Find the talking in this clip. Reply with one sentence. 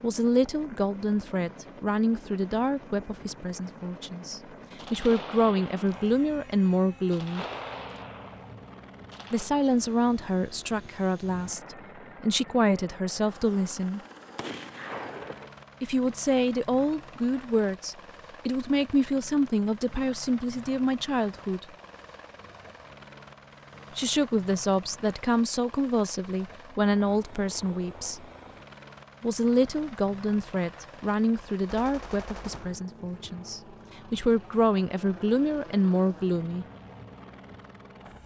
You can hear the talking from 0.0 to 7.5 s, from 9.3 to 14.0 s, from 15.8 to 21.6 s, from 23.9 to 28.2 s and from 29.2 to 36.6 s.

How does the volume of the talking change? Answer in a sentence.
The loudness of the talking stays about the same.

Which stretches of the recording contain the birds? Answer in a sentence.
You can't hear the birds here.